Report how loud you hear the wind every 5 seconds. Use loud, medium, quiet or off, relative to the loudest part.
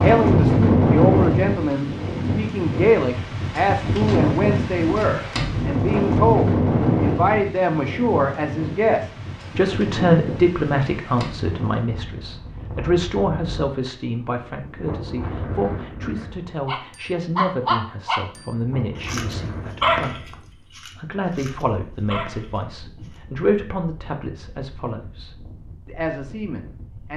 loud, loud, quiet, quiet, quiet, quiet.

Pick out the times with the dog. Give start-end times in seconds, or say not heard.
16.6-22.6.